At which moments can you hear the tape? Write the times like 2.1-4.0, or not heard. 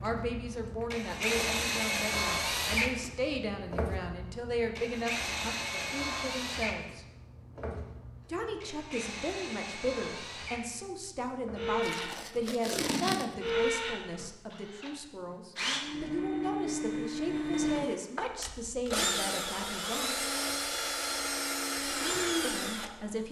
11.8-13.6.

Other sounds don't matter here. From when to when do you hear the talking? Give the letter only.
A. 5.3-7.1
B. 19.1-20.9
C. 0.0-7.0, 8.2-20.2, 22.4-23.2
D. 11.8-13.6
C.